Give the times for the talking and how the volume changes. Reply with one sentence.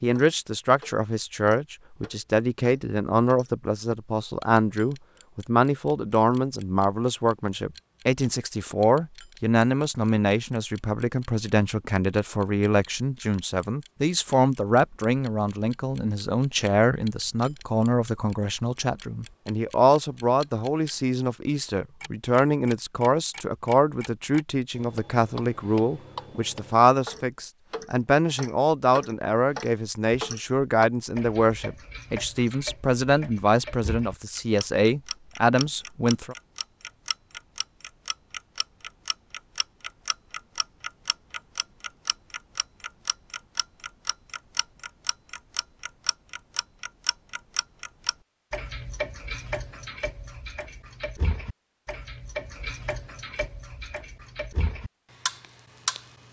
The talking can be heard from 0.0 to 36.4 s, at a steady volume.